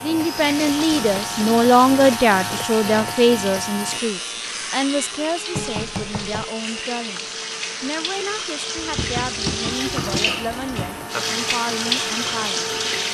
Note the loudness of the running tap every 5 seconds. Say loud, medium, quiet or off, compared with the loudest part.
medium, medium, loud.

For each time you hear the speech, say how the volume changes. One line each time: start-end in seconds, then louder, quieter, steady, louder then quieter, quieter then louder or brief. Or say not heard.
0.0-12.7 quieter.